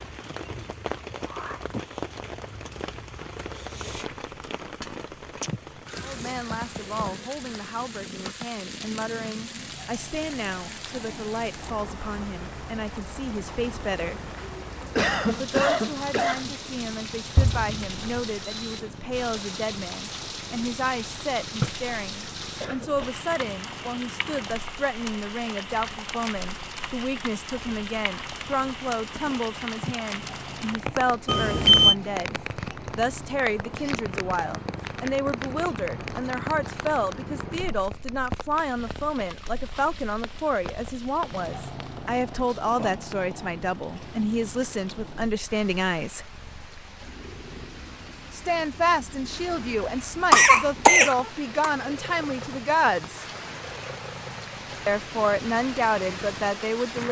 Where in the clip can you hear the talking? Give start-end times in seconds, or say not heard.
6.0-14.3, 15.3-46.3, 48.3-53.2, 54.9-57.0.